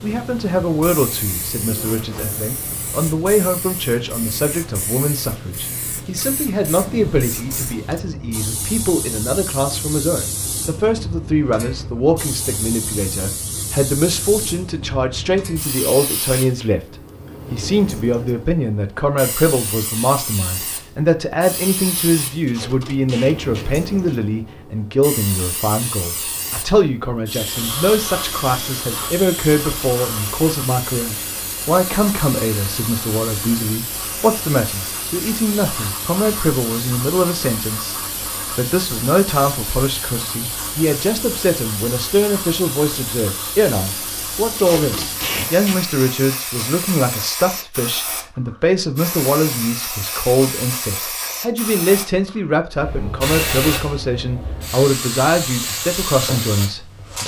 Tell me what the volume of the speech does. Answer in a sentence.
The volume of the speech stays about the same.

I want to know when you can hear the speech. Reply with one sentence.
You can hear the speech from 0.0 to 57.2 s.